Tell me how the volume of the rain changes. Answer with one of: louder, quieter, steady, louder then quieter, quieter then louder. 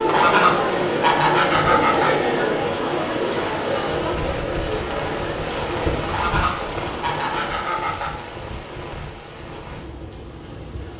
louder then quieter.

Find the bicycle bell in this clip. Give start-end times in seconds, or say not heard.
not heard.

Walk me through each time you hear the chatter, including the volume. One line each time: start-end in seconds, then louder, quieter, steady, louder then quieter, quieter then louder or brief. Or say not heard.
0.0-6.0 quieter.